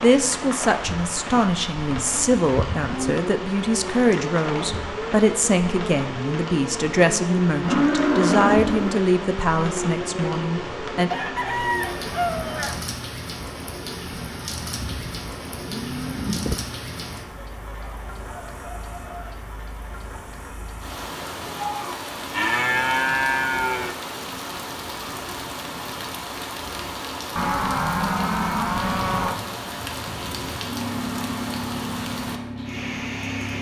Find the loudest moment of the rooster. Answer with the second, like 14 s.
12 s.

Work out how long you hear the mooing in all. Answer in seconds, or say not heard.
9 s.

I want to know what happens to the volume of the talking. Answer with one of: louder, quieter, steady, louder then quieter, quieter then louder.
steady.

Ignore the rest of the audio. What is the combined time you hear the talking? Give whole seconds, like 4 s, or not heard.
11 s.